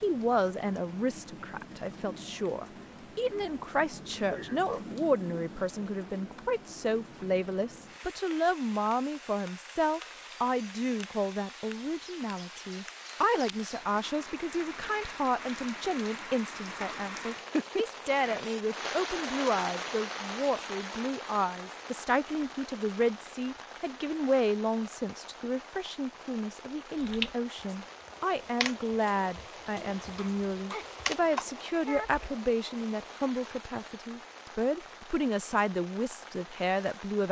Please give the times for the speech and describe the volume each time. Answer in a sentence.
You can hear the speech from 0.0 to 37.2 s, at a steady volume.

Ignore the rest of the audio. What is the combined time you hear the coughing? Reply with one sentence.
The coughing can be heard for 3 seconds in total.